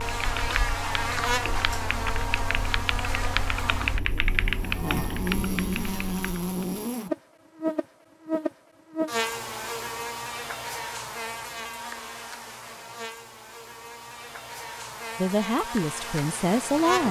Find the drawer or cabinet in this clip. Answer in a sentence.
You can't hear the drawer or cabinet here.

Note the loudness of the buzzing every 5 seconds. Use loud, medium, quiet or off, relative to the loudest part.
loud, loud, medium, loud.